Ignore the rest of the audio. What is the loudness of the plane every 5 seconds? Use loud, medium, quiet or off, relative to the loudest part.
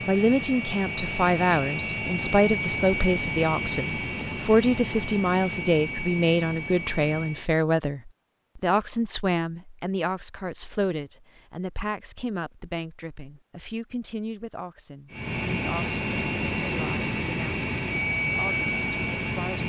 loud, medium, off, loud.